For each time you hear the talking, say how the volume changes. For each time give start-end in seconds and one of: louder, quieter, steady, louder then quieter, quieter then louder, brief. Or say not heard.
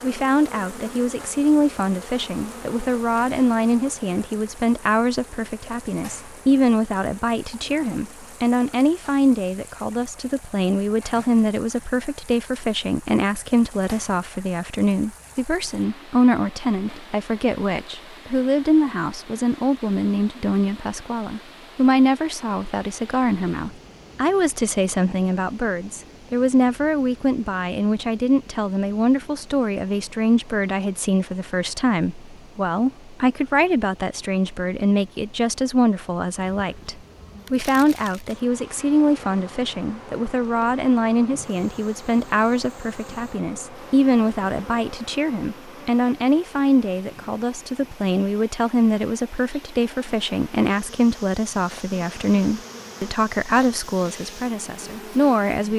0.0-55.7 steady.